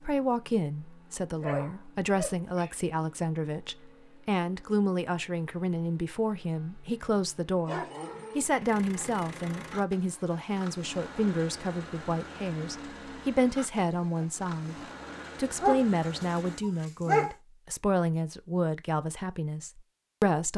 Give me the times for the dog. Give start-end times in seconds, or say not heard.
1.4-2.7, 7.7-9.7, 15.6-17.3.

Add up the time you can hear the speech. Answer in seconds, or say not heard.
20 s.